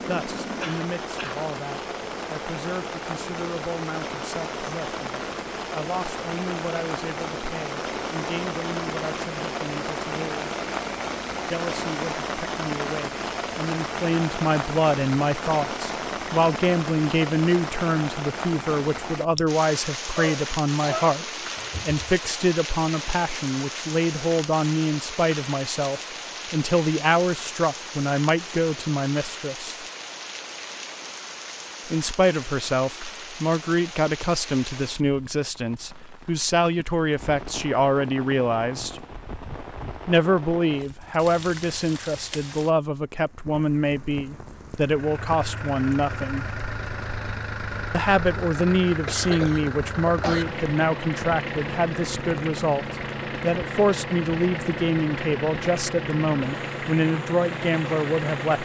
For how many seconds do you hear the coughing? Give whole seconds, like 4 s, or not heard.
4 s.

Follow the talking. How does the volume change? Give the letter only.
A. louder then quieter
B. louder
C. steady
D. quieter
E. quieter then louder
B.